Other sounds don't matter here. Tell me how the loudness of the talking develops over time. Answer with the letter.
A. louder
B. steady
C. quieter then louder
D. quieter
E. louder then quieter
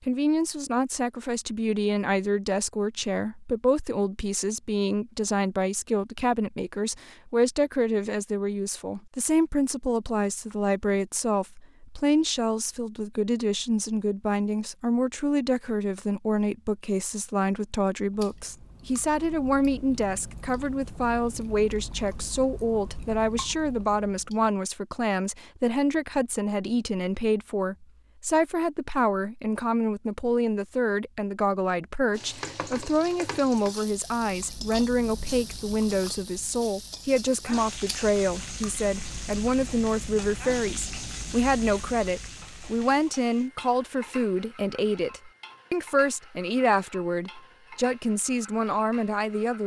B.